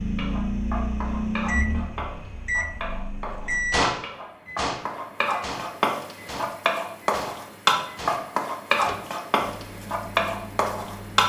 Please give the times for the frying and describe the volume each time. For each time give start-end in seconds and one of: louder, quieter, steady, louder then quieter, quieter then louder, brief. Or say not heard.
0.0-11.2 louder.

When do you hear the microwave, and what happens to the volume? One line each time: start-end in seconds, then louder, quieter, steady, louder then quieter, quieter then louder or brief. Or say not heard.
0.0-11.2 quieter.